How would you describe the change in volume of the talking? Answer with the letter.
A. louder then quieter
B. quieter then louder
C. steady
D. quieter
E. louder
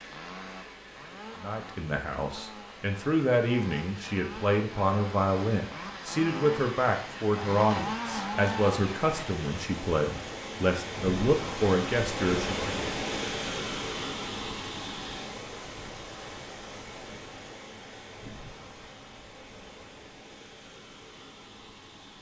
C.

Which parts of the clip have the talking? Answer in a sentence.
You can hear the talking from 1.4 to 12.8 s.